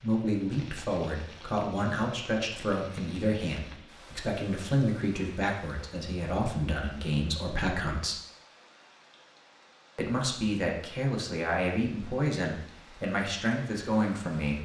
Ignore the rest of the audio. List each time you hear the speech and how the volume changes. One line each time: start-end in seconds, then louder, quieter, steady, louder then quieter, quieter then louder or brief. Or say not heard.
0.0-8.2 steady
9.9-14.5 steady.